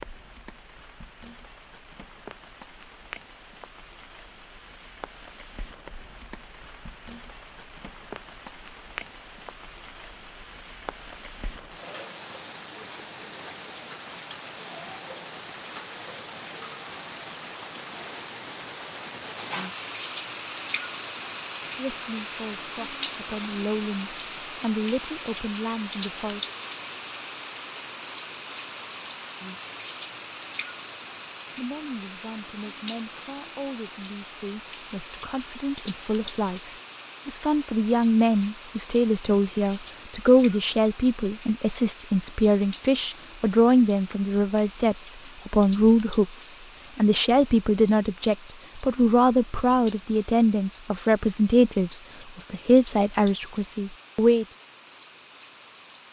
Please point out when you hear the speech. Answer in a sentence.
You can hear the speech from 21.8 to 26.5 s and from 31.6 to 54.5 s.